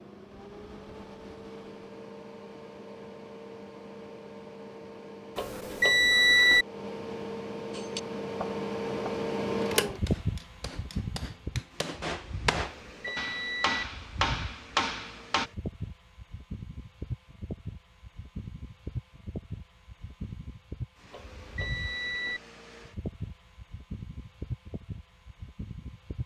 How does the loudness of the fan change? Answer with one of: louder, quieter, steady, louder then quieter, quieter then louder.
louder then quieter.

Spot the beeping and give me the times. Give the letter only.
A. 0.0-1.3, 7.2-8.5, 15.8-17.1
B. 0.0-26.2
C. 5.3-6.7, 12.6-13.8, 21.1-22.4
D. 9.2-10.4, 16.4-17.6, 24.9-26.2
C.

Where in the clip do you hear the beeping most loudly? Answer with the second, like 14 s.
6 s.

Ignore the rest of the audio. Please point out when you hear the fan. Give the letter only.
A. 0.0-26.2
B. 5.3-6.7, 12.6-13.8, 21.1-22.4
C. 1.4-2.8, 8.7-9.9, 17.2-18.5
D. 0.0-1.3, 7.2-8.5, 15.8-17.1
A.